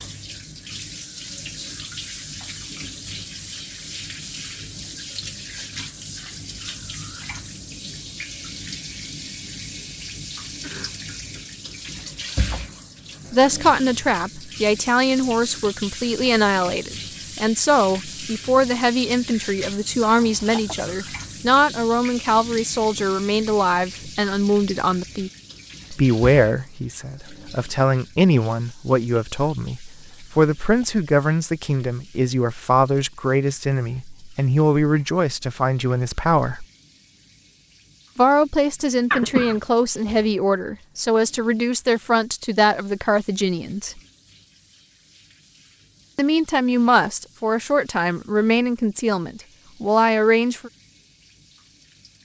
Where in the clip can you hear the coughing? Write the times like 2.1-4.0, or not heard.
10.6-11.4, 20.1-20.8, 39.1-39.6.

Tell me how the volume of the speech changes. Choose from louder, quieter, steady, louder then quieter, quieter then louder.
steady.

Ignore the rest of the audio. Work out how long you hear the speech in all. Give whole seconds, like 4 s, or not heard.
33 s.